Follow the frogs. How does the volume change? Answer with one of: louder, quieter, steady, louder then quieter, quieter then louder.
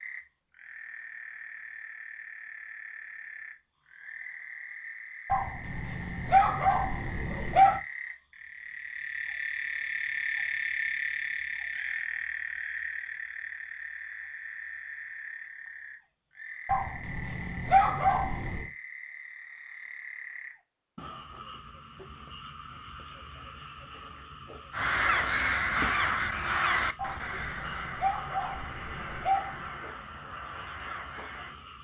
louder then quieter.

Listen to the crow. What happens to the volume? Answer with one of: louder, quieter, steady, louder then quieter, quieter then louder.
quieter.